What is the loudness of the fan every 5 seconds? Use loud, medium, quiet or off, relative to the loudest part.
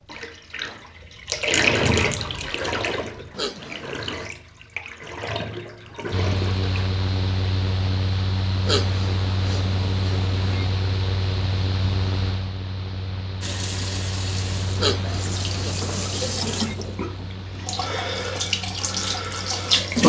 off, loud, loud, medium.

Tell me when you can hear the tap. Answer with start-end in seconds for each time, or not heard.
0.0-6.9, 13.4-20.0.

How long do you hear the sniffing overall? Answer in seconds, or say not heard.
5 s.